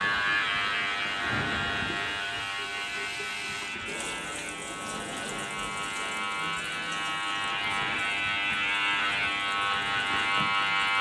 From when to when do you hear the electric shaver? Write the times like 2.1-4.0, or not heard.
0.0-10.9.